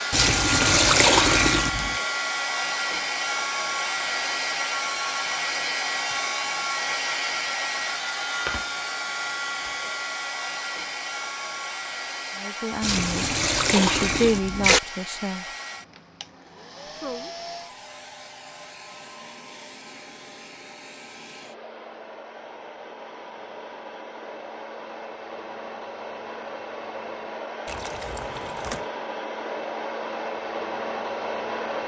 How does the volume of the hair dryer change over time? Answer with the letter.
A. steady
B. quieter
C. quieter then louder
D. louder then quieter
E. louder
C.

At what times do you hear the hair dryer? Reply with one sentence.
You can hear the hair dryer from 0.0 to 31.8 s.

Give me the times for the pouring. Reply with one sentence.
You can hear the pouring from 0.1 to 2.0 s, from 12.8 to 14.8 s and from 27.6 to 28.9 s.